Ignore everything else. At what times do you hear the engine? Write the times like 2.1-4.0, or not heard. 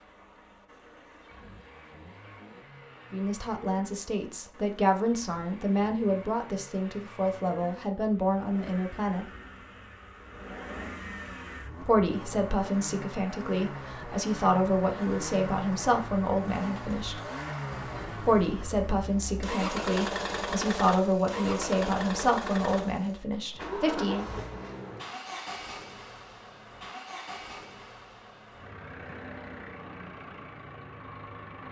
0.0-31.6.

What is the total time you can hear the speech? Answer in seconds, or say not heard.
18 s.